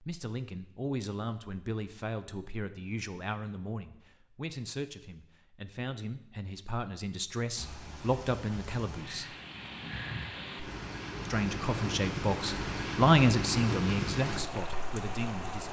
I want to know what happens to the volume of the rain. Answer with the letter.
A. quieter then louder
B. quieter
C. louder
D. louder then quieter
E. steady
C.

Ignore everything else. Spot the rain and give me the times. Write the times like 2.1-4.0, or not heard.
7.5-15.6.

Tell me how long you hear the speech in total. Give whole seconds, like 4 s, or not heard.
14 s.